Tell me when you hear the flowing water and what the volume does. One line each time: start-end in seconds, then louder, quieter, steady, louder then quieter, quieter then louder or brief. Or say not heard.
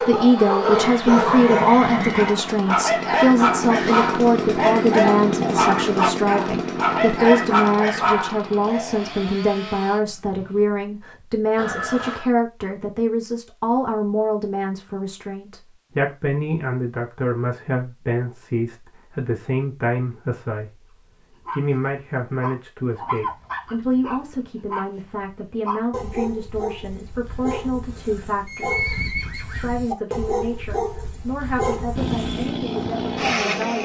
not heard.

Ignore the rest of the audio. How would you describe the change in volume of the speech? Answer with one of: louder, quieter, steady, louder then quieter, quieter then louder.
quieter.